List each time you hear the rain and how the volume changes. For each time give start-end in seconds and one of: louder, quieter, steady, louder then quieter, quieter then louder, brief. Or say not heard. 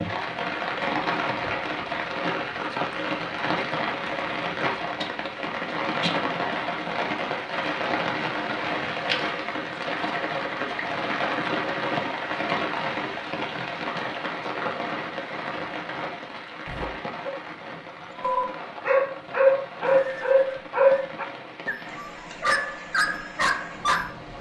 0.0-24.3 quieter.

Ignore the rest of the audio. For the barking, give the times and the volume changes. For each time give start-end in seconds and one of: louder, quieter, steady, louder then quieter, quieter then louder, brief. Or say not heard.
16.6-17.4 brief
18.1-24.1 quieter.